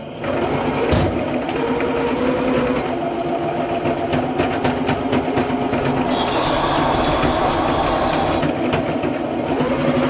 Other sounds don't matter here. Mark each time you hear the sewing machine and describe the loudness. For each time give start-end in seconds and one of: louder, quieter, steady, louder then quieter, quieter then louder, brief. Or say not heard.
0.0-10.0 steady.